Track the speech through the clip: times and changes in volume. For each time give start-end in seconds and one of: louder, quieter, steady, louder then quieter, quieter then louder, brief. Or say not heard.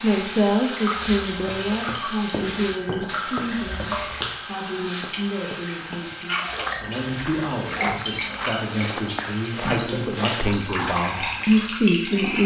0.0-12.4 quieter then louder.